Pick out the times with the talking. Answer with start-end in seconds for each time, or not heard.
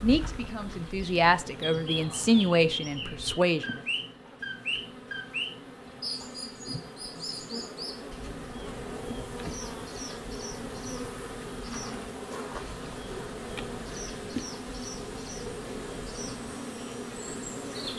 0.0-3.8.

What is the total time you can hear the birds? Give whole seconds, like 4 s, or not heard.
18 s.